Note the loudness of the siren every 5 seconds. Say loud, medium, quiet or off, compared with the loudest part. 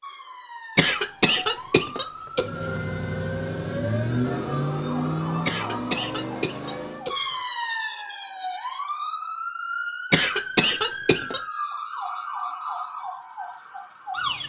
medium, loud, loud.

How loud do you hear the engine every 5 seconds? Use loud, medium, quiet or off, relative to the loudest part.
loud, loud, off.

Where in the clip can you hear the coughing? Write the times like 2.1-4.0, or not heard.
0.8-2.5, 5.5-7.3, 10.1-11.4.